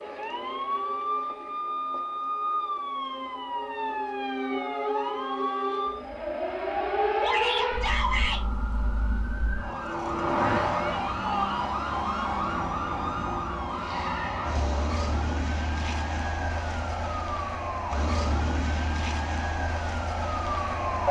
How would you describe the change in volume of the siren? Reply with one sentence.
The volume of the siren stays about the same.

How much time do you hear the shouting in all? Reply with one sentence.
The shouting can be heard for 2 seconds in total.